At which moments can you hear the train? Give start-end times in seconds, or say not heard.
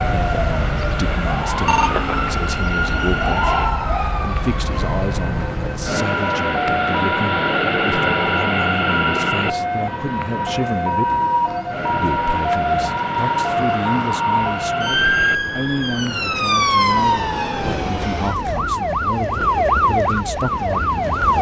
0.0-21.3.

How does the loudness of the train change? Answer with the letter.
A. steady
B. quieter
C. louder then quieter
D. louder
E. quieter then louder
C.